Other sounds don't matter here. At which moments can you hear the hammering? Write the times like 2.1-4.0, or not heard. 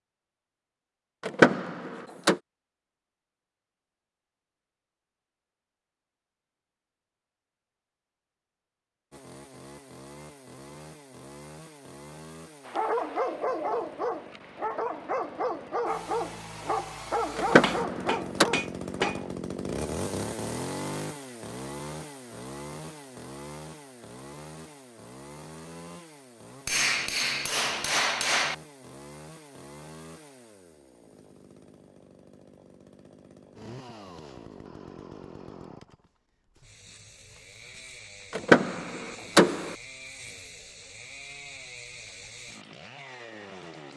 17.6-19.2, 26.6-28.6.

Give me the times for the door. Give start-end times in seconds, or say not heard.
1.2-2.4, 17.4-18.4, 38.3-39.8.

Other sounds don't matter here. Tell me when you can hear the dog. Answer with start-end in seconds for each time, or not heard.
12.7-19.4.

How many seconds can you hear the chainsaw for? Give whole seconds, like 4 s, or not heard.
35 s.